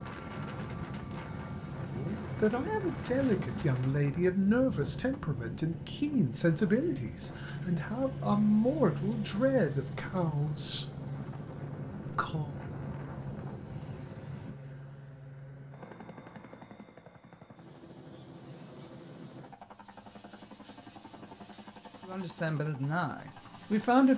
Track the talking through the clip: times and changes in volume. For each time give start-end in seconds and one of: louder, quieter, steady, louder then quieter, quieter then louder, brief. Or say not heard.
1.9-10.8 steady
12.1-12.6 brief
22.1-24.1 brief.